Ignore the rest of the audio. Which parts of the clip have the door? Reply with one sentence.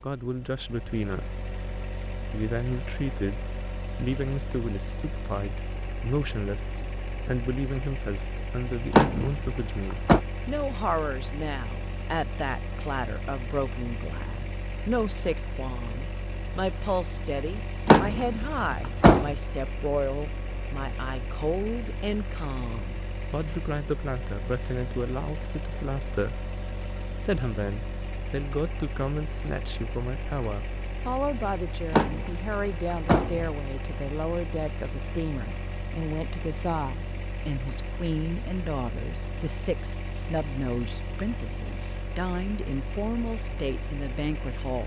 The door can be heard from 8.9 to 10.2 s, from 17.9 to 19.4 s and from 31.9 to 33.5 s.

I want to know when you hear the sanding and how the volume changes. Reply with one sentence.
You can't hear the sanding here.